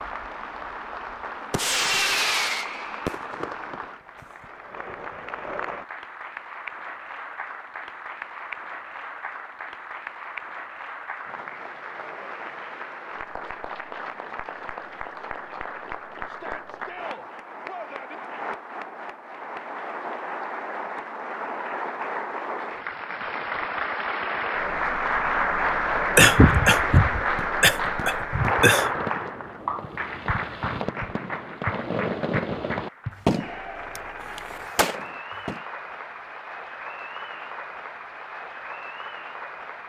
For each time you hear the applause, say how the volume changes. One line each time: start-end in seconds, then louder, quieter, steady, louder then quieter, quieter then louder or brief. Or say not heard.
0.0-39.8 louder then quieter.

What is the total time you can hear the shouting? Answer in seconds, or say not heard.
2 s.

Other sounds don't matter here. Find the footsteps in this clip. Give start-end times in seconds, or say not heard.
not heard.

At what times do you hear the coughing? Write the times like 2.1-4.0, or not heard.
26.1-28.9.